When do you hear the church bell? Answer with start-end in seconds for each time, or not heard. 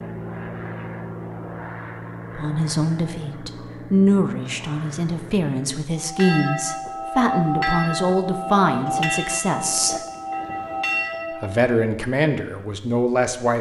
6.0-11.7.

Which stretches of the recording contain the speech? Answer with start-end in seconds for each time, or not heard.
2.4-10.0, 11.4-13.5.